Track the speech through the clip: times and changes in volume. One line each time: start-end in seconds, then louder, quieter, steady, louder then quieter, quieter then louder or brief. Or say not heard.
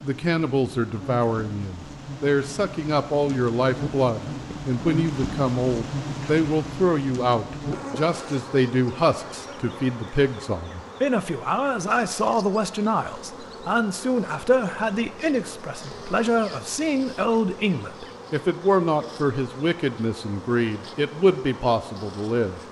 0.0-22.6 steady.